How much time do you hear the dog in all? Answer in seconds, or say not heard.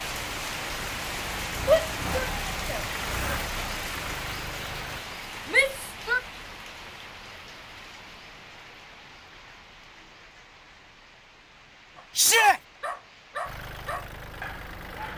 3 s.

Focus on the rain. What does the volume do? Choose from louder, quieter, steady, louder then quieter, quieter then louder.
quieter.